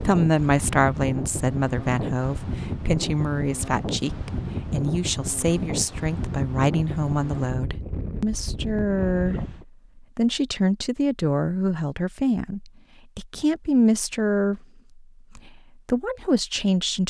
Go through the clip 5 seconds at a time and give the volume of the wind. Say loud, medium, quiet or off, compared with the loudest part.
loud, loud, off, off.